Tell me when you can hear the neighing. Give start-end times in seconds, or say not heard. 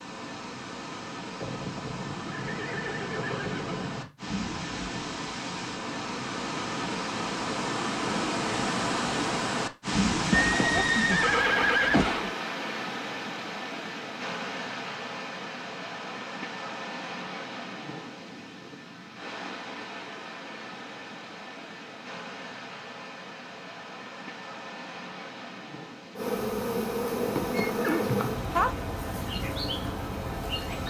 1.4-4.1, 10.3-12.3, 27.5-28.7.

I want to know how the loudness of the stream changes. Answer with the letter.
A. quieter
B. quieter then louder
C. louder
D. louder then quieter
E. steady
D.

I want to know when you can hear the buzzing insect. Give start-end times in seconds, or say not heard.
26.1-30.8.